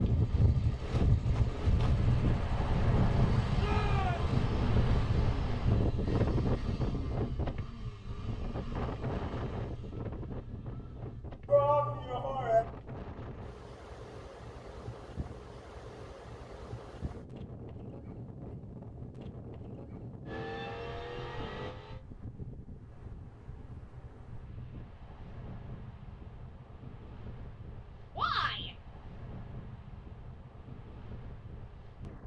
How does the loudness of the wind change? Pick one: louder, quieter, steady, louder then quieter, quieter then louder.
quieter.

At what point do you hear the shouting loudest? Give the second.
12 s.